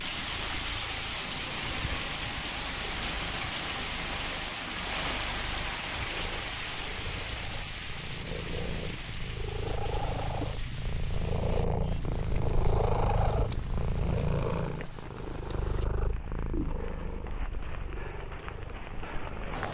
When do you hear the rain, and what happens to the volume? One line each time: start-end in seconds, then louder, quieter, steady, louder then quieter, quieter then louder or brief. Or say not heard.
0.0-19.6 quieter.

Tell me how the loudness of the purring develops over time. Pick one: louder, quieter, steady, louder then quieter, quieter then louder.
louder then quieter.